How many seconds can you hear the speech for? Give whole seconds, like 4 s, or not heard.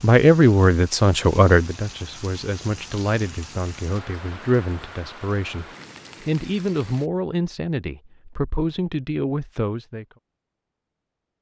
10 s.